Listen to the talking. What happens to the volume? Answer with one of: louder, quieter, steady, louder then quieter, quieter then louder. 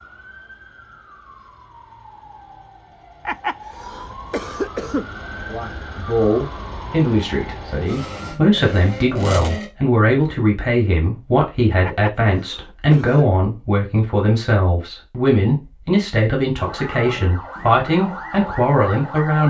steady.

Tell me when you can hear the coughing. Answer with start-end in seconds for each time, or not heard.
3.2-5.0, 11.8-13.2.